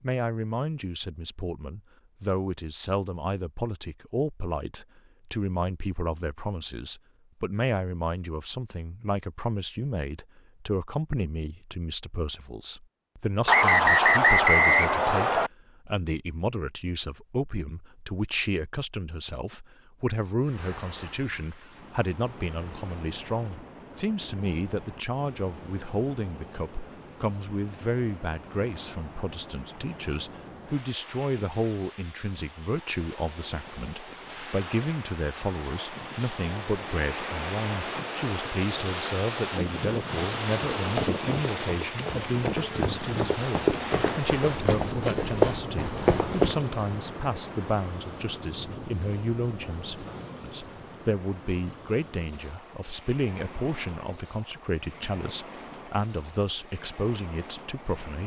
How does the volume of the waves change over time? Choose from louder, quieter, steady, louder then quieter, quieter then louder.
louder then quieter.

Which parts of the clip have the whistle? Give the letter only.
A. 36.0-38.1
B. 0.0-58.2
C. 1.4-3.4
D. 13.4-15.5
D.